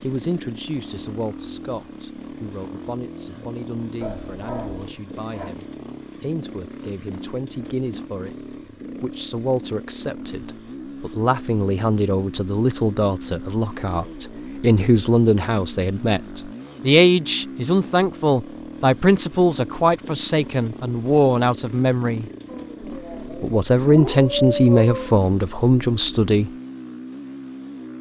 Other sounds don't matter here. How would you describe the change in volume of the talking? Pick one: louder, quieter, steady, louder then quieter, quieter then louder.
louder.